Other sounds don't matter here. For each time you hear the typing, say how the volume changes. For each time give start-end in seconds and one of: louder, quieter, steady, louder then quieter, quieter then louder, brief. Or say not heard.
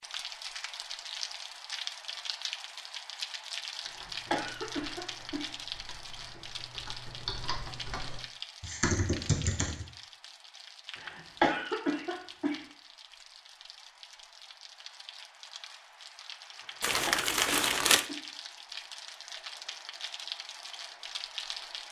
3.8-9.8 louder.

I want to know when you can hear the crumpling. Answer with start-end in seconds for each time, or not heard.
16.8-18.1.